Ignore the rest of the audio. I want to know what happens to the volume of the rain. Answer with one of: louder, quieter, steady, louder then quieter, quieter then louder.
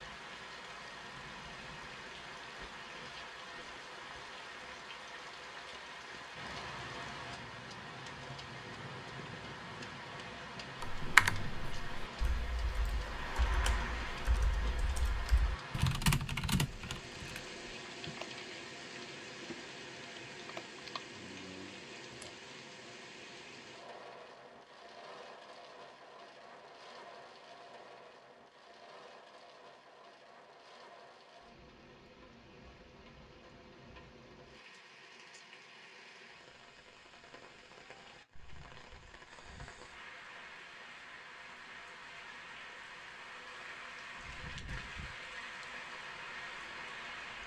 quieter then louder.